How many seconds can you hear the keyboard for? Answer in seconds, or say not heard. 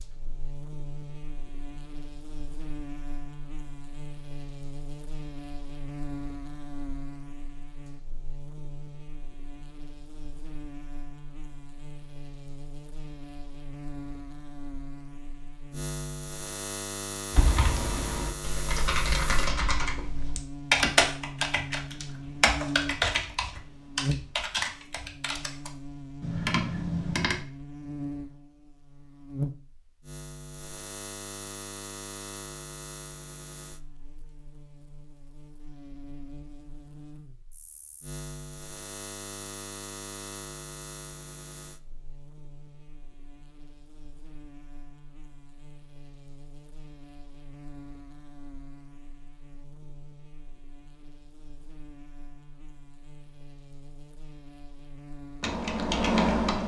11 s.